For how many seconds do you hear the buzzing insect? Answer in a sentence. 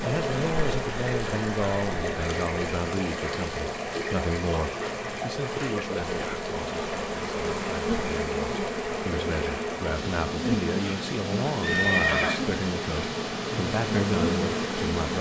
You can hear the buzzing insect for 15 seconds altogether.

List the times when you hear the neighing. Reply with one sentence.
The neighing can be heard from 11.6 to 12.4 s.